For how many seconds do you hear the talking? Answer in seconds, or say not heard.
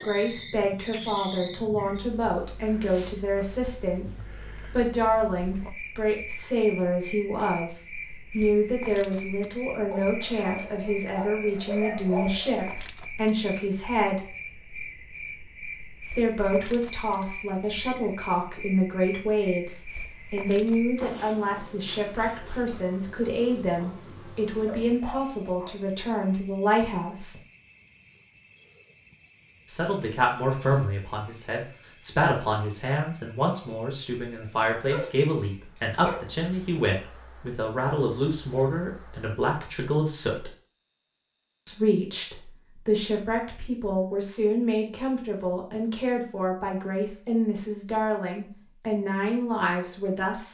45 s.